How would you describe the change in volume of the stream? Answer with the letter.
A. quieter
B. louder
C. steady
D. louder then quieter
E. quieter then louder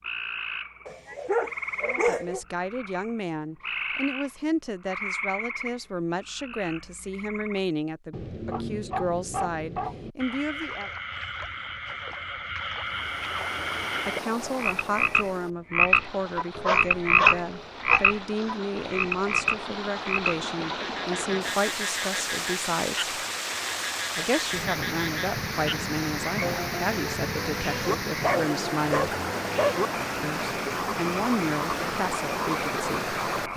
B.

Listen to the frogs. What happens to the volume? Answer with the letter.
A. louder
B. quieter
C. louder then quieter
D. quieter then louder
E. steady
C.